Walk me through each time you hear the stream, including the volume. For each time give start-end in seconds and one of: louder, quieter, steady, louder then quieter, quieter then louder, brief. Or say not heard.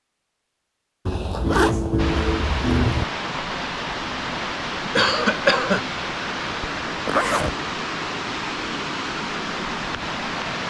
1.9-10.6 steady.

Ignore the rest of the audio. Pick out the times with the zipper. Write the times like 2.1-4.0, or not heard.
1.1-3.0, 7.0-7.5.